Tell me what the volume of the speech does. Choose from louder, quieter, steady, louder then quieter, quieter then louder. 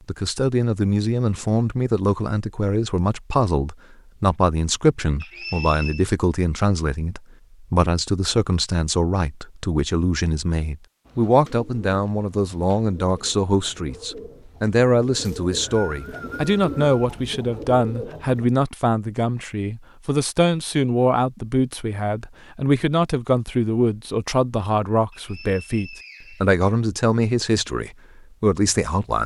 steady.